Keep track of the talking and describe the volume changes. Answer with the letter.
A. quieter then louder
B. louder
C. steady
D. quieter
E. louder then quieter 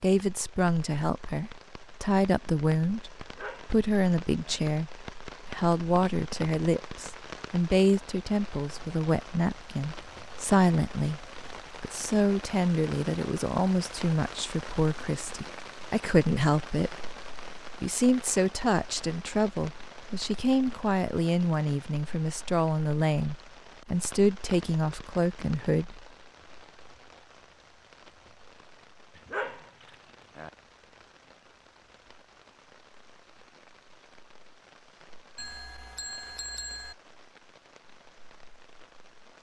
C.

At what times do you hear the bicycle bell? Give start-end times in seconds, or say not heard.
35.4-37.0.